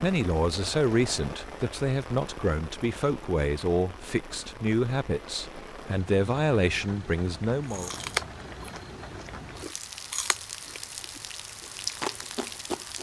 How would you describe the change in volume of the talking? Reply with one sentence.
The loudness of the talking stays about the same.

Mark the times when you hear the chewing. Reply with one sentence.
The chewing can be heard from 7.7 to 12.9 s.